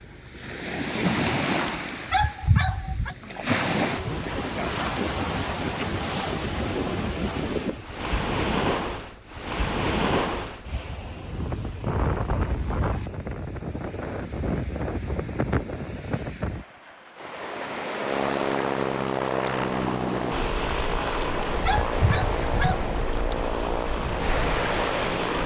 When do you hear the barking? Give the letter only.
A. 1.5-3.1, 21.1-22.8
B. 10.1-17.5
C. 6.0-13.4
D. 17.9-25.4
A.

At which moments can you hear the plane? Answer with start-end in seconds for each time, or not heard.
17.9-25.4.